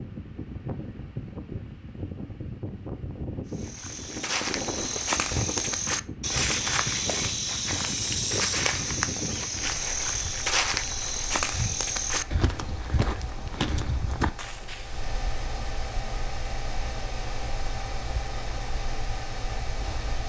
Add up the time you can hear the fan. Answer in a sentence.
The fan can be heard for 20 seconds in total.